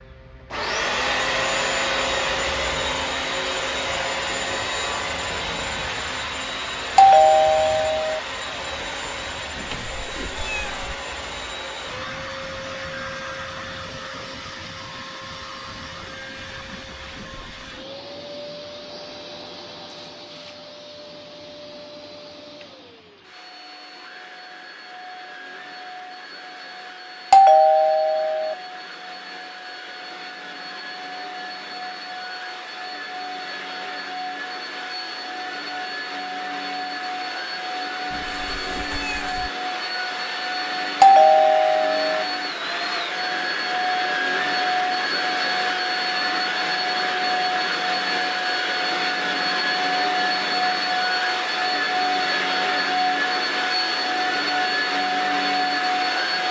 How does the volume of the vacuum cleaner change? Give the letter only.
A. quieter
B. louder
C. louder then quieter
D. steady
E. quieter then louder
E.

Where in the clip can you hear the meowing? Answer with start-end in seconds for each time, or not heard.
9.6-11.0, 38.1-39.5.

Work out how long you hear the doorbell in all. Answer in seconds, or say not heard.
4 s.